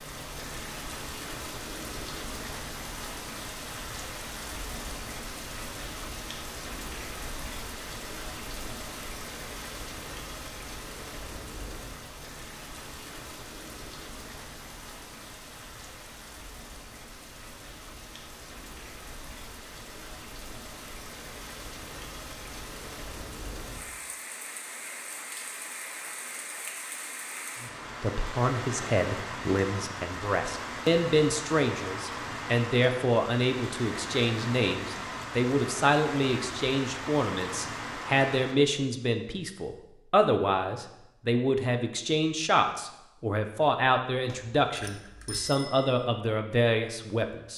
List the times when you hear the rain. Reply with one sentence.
The rain can be heard from 0.0 to 38.5 s.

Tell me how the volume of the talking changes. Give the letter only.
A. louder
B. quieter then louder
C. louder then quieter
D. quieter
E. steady
E.